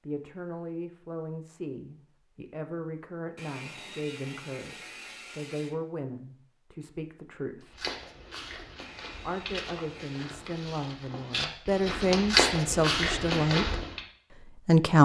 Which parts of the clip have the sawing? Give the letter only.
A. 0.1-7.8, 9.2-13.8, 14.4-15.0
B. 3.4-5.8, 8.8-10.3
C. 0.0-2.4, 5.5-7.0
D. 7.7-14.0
B.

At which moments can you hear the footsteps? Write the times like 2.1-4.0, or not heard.
7.7-14.0.